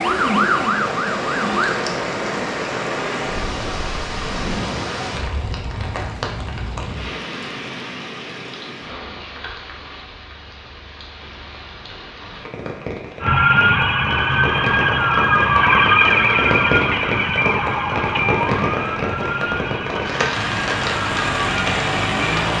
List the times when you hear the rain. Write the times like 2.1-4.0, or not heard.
0.0-22.5.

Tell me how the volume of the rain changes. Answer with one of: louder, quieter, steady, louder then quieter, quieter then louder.
quieter then louder.